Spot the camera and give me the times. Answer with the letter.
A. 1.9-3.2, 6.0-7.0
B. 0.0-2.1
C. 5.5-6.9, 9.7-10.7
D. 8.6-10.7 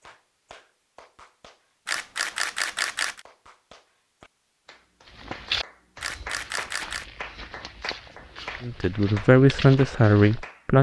A.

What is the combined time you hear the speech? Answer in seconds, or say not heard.
2 s.